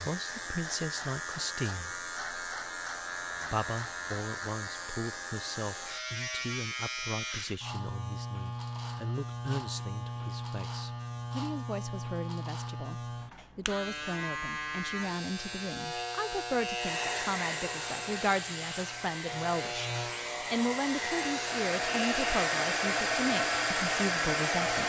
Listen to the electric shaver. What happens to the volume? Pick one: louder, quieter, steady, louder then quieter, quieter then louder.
steady.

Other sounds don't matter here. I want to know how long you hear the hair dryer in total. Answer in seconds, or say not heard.
8 s.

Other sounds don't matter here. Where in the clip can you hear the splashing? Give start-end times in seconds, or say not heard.
not heard.